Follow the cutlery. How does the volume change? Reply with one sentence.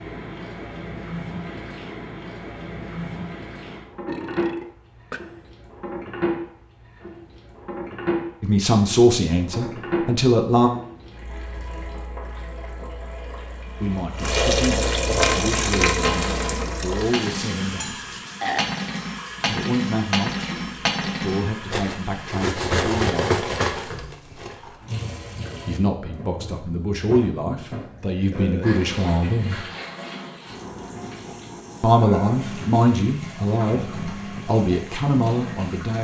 The loudness of the cutlery goes up.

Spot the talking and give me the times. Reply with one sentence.
You can hear the talking from 8.4 to 10.7 s, from 13.8 to 17.9 s, from 19.4 to 20.6 s, from 21.2 to 23.4 s, from 25.6 to 29.6 s and from 31.8 to 35.9 s.